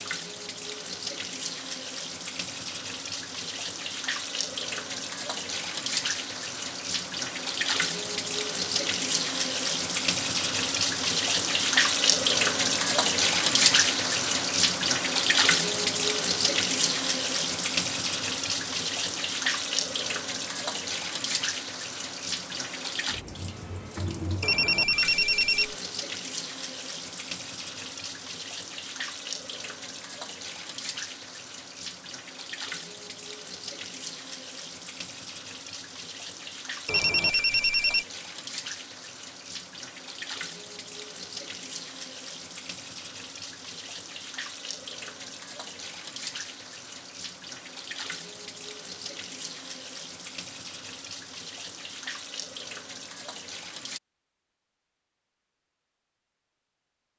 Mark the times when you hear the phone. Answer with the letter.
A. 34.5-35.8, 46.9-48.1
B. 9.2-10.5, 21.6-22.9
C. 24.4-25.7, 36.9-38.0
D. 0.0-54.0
C.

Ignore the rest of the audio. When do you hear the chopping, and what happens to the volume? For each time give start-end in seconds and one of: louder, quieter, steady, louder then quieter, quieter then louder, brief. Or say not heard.
not heard.